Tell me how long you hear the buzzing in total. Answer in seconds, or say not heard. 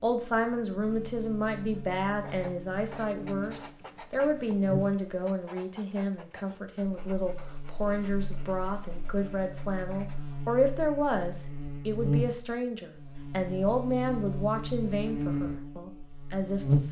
17 s.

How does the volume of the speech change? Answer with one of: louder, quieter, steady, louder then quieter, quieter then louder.
steady.